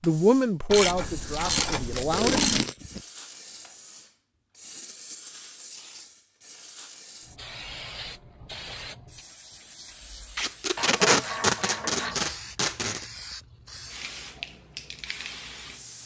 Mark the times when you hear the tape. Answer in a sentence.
You can hear the tape from 1.3 to 3.0 s and from 10.3 to 13.1 s.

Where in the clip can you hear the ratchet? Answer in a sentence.
The ratchet can be heard from 0.7 to 2.6 s and from 10.8 to 12.2 s.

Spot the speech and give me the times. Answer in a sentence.
You can hear the speech from 0.0 to 2.4 s.